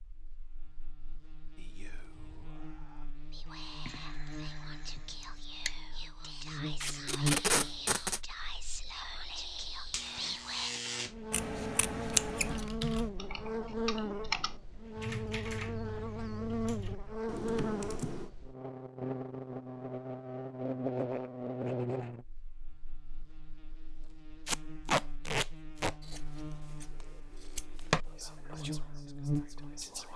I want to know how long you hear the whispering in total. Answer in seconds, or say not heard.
11 s.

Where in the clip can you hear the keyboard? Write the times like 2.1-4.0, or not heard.
12.3-18.3.